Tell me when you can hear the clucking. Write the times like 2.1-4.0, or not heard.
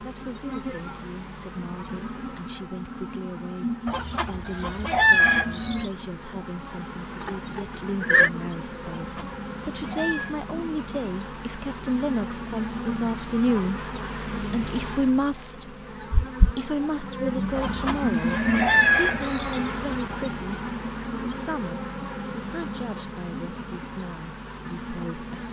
3.9-5.9, 8.8-10.3, 17.6-20.0.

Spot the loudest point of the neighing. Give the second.
8 s.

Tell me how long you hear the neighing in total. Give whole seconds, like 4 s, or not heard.
3 s.